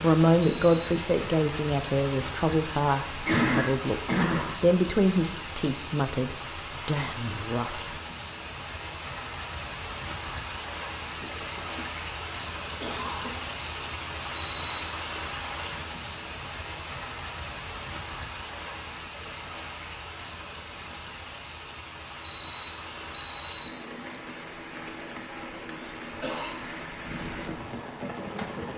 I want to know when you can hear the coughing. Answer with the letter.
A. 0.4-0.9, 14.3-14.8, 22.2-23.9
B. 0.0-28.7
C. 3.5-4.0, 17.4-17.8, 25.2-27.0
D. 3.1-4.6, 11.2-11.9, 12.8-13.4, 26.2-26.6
D.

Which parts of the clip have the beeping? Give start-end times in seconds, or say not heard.
0.4-0.9, 14.3-14.8, 22.2-23.9.